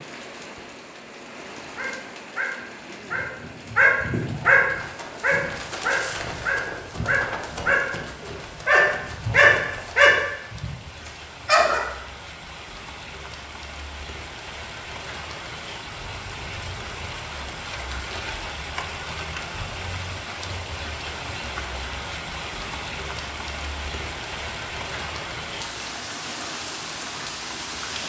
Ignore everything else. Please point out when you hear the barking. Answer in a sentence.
You can hear the barking from 1.8 to 11.8 s.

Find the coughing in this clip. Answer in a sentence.
The coughing can't be heard in this clip.